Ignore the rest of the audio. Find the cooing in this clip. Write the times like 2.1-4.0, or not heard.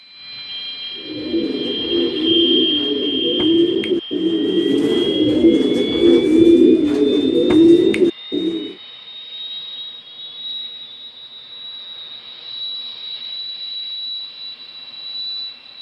0.9-8.8.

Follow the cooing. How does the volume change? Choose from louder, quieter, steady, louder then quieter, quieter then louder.
louder.